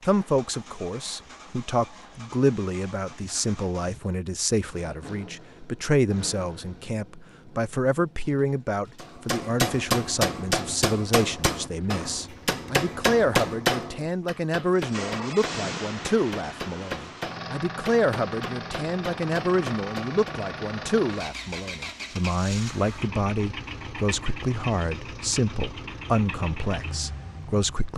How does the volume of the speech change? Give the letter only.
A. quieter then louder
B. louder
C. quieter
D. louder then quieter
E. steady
E.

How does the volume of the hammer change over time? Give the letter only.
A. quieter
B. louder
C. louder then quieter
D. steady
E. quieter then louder
A.